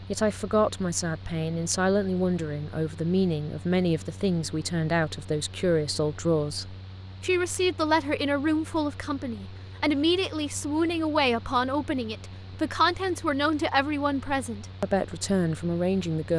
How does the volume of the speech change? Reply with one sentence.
The volume of the speech stays about the same.